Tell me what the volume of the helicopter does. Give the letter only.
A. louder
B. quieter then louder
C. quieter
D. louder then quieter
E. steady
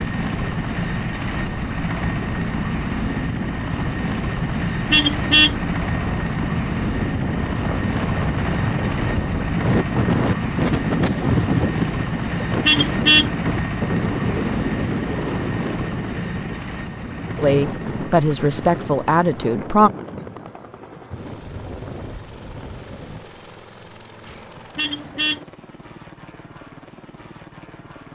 C.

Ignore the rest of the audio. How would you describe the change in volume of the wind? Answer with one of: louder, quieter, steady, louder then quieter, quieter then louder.
louder then quieter.